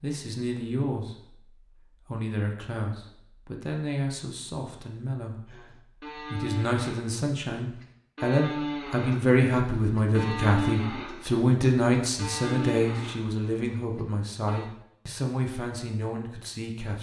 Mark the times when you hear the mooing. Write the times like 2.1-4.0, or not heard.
5.5-14.7.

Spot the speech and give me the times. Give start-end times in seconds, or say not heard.
0.0-1.1, 2.0-5.4, 6.2-16.9.